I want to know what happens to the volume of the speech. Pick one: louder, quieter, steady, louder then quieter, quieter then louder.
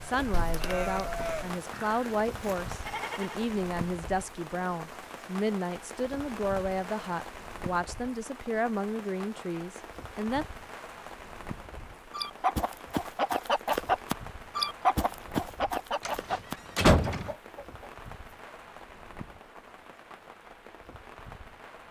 steady.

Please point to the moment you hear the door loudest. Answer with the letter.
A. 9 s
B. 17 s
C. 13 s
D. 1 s
B.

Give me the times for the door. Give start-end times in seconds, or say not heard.
0.3-1.5, 16.1-17.3.